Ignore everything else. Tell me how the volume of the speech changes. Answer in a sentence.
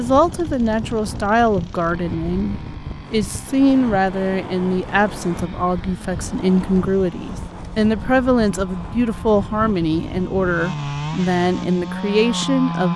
The volume of the speech stays about the same.